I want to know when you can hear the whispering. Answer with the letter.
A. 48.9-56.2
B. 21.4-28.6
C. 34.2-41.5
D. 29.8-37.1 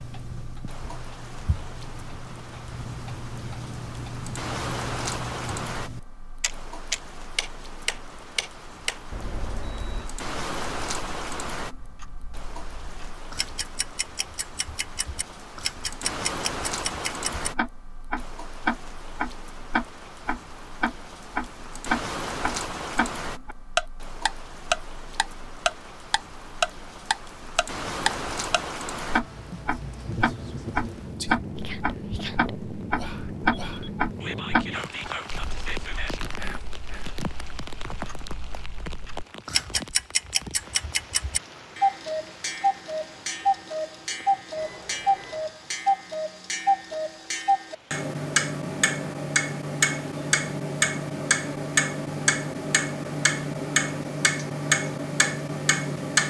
D.